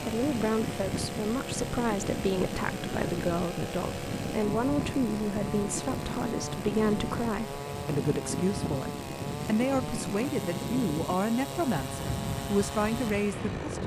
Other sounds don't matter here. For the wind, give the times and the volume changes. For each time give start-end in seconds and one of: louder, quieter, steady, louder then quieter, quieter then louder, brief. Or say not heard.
0.0-13.8 steady.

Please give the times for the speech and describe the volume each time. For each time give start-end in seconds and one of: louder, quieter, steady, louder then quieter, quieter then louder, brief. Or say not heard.
0.0-13.8 steady.